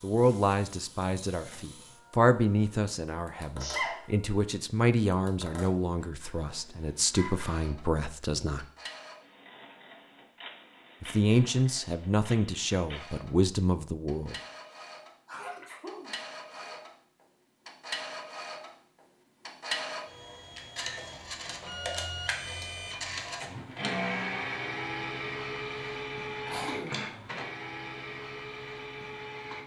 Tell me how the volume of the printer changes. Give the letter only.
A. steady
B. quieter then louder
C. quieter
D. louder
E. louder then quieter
D.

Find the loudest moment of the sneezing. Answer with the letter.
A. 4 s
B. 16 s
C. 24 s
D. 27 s
A.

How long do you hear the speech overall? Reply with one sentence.
The speech can be heard for 12 seconds in total.